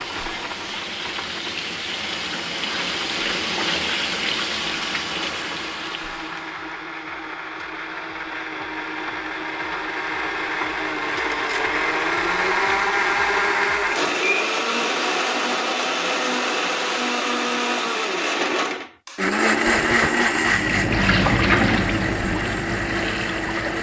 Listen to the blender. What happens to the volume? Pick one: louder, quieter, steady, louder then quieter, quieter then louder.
louder.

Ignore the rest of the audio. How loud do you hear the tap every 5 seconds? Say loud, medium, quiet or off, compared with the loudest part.
loud, medium, off, off, loud.